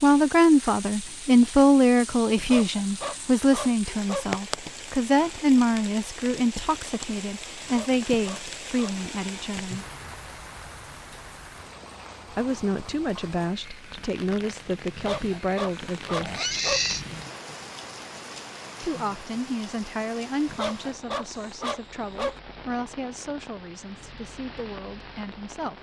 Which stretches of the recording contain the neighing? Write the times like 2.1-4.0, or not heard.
16.2-17.1.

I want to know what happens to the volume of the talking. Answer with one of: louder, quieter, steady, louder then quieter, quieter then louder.
quieter.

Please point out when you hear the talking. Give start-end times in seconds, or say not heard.
0.0-9.8, 12.3-16.4, 18.8-25.7.